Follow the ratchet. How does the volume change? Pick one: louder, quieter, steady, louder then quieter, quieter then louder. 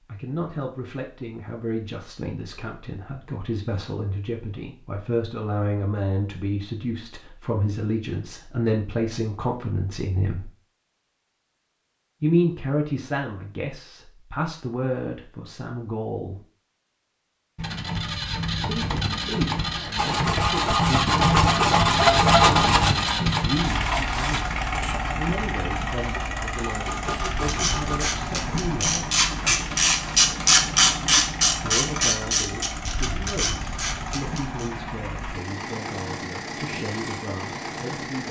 louder then quieter.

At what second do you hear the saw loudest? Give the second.
22 s.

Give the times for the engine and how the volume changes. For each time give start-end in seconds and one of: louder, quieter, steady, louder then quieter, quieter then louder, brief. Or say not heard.
17.6-38.2 quieter.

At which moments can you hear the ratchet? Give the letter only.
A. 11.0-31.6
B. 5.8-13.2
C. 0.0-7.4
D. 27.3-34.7
D.